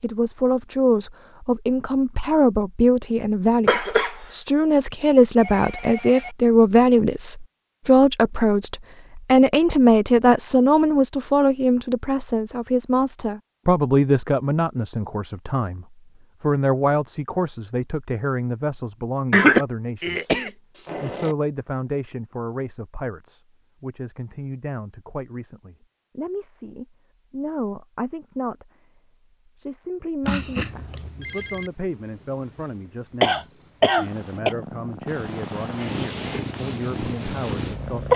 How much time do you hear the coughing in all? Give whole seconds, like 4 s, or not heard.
4 s.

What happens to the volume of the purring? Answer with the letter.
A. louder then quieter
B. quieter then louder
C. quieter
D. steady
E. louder
E.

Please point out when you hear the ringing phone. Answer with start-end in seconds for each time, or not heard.
5.3-6.3, 30.2-31.7.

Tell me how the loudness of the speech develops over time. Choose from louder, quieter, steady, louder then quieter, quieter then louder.
quieter.